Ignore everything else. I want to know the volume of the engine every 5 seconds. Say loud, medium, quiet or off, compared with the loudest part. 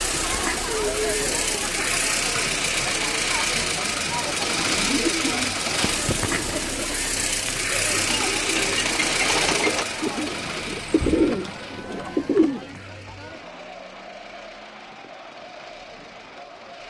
loud, loud, quiet, quiet.